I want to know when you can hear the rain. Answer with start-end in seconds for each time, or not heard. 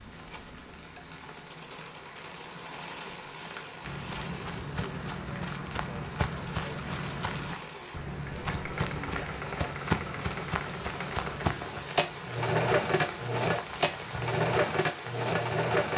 0.0-15.7.